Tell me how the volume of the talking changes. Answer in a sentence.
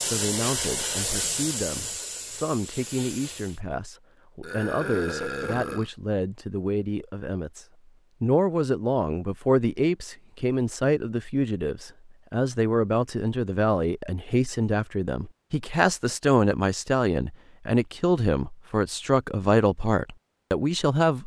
The loudness of the talking goes up.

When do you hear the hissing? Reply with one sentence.
You can hear the hissing from 0.0 to 3.6 s.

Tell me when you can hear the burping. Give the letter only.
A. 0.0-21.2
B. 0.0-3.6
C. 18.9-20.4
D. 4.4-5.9
D.